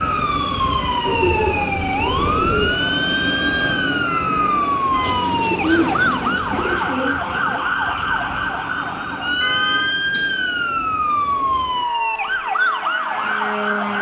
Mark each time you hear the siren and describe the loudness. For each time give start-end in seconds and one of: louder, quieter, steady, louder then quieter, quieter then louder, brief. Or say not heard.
0.0-13.9 steady.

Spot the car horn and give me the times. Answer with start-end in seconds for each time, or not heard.
4.0-5.3, 9.4-9.9.